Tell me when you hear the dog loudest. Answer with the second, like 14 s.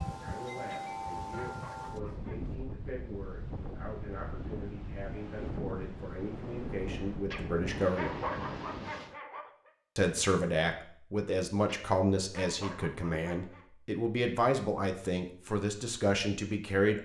8 s.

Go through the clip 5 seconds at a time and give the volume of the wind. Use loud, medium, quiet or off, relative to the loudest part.
loud, loud, off, off.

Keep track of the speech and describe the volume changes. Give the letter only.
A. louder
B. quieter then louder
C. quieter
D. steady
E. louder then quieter
A.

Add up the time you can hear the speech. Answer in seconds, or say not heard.
15 s.